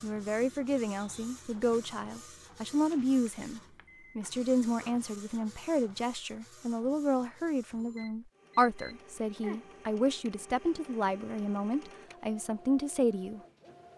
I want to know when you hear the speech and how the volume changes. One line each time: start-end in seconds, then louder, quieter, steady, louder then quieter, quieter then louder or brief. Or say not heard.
0.0-13.4 steady.